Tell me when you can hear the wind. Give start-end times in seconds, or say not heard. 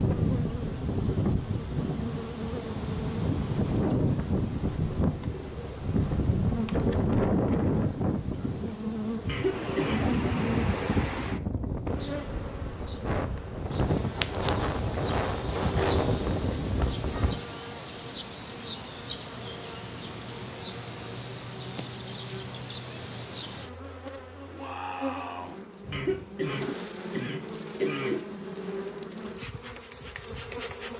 0.0-17.4.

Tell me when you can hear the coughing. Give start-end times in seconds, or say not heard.
9.2-10.1, 25.9-28.2.